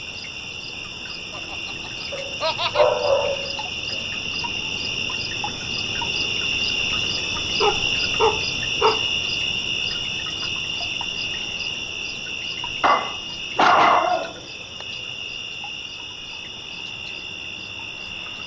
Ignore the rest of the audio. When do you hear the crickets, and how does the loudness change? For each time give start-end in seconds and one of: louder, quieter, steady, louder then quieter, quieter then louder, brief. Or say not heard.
0.0-18.4 louder then quieter.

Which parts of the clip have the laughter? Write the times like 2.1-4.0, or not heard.
1.3-2.9.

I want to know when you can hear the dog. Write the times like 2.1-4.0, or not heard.
2.1-4.0, 7.6-9.1, 12.8-14.8.